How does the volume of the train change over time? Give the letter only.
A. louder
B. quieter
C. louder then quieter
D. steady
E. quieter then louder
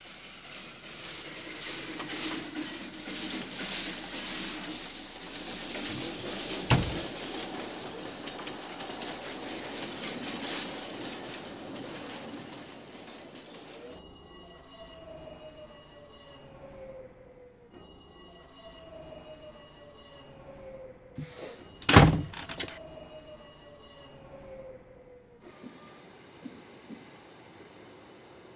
B.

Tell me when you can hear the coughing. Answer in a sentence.
You can't hear the coughing here.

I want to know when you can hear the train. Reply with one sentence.
The train can be heard from 0.0 to 28.5 s.